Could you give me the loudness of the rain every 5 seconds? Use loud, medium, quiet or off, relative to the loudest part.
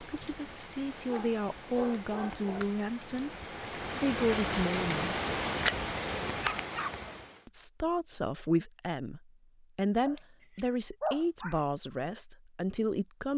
medium, loud, off.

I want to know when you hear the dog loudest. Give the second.
11 s.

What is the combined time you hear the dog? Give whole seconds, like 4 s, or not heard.
4 s.